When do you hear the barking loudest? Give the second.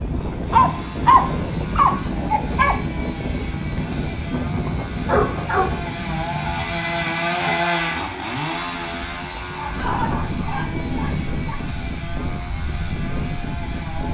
1 s.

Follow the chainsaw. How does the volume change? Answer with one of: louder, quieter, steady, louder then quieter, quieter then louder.
louder then quieter.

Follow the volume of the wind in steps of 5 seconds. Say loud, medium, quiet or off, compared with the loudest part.
loud, medium, loud.